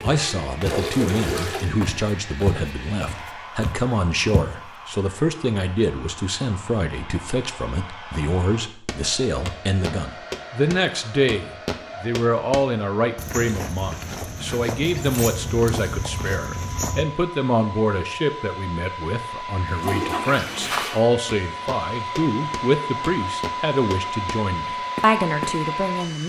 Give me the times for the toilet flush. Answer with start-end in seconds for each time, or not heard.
0.7-1.7, 19.6-21.0.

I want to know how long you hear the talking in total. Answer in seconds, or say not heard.
26 s.